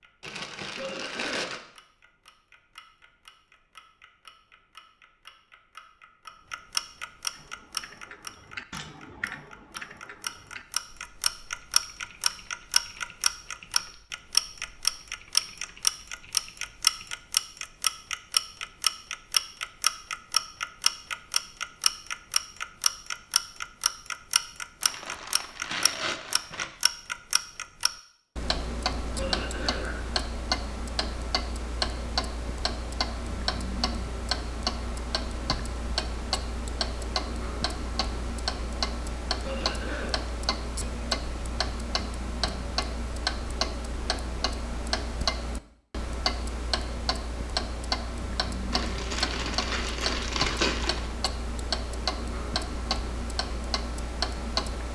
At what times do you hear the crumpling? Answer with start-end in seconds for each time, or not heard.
0.2-1.6, 24.8-26.7, 48.7-51.1.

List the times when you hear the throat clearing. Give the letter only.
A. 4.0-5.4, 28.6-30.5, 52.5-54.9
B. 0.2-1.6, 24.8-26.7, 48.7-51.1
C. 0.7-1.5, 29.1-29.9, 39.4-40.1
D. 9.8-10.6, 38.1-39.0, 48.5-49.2
C.